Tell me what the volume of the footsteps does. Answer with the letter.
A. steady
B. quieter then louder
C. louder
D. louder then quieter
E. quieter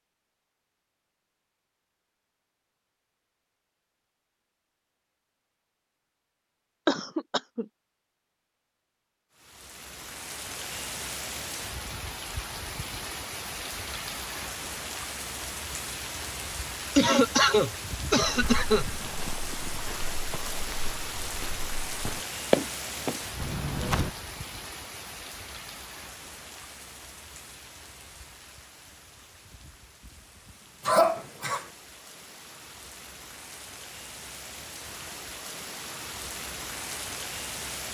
D.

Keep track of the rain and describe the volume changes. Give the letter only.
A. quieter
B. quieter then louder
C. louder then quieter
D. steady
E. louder
B.